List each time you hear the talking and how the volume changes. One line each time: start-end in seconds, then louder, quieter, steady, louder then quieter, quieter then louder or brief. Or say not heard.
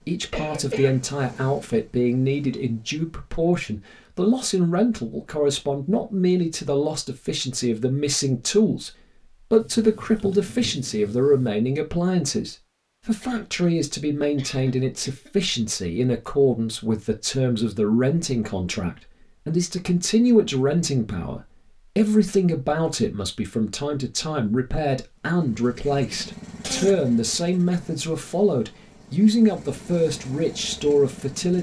0.1-31.5 steady.